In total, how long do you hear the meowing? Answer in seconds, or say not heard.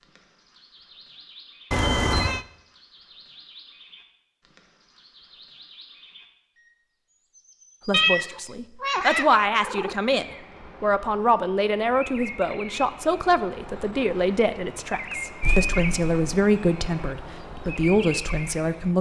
4 s.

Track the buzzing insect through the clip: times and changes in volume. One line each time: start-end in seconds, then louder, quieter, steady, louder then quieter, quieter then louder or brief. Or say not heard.
not heard.